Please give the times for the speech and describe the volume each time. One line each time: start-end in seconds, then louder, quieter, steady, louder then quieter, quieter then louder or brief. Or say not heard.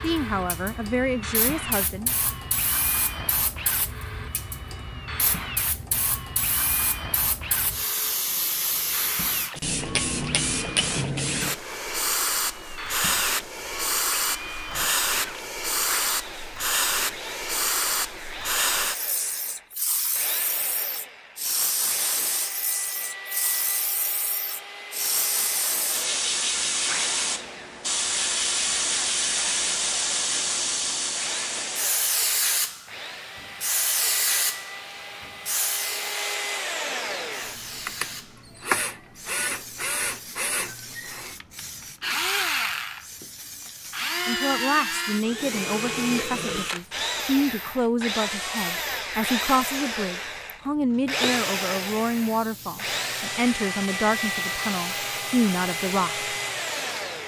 0.0-2.1 brief
44.2-56.2 steady.